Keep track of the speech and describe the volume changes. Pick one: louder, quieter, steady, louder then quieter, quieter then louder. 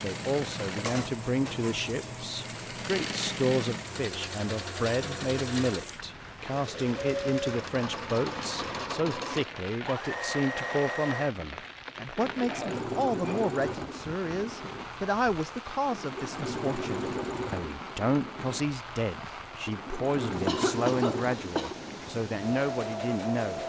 steady.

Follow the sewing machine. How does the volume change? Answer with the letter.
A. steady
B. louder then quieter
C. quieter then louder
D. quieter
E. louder
A.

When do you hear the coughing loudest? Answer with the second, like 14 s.
21 s.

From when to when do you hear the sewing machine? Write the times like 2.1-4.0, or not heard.
0.0-23.6.